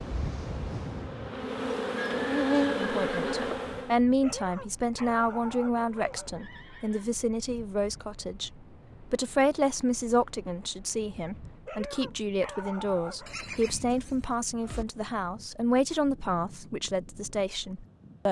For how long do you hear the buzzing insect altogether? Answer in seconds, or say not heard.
4 s.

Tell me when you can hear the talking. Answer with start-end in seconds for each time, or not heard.
2.8-18.2.